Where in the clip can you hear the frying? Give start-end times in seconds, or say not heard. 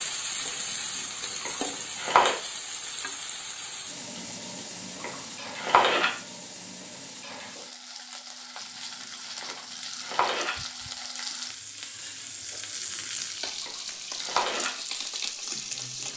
0.0-16.1.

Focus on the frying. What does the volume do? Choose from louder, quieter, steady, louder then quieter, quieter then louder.
quieter then louder.